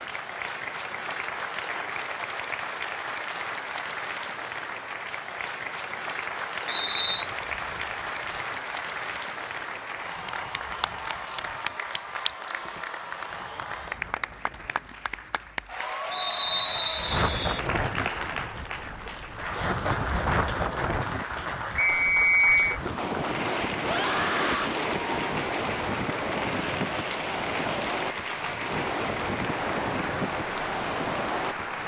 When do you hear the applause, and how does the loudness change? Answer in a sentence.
You can hear the applause from 0.0 to 31.8 s, at a steady volume.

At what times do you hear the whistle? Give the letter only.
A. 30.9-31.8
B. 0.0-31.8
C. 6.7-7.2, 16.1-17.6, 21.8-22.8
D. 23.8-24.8
C.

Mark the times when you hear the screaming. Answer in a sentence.
The screaming can be heard from 23.8 to 24.8 s.